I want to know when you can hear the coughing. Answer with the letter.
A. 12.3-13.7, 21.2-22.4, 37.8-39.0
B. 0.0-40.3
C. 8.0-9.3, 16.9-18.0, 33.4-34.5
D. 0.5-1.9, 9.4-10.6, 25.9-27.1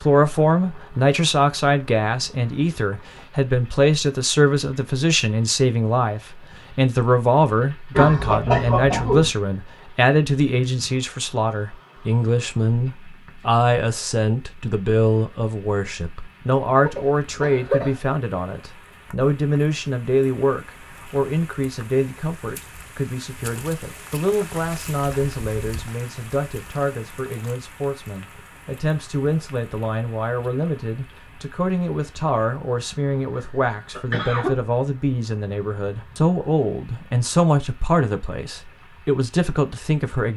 C.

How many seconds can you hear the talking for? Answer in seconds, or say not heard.
40 s.